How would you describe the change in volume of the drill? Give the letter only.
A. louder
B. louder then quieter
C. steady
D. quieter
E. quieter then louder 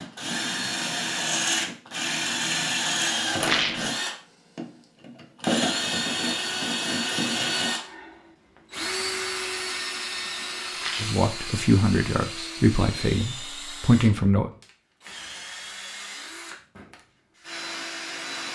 D.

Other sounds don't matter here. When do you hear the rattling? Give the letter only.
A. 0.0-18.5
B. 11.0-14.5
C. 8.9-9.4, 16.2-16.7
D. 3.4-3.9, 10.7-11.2
D.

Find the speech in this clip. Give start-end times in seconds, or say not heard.
11.0-14.5.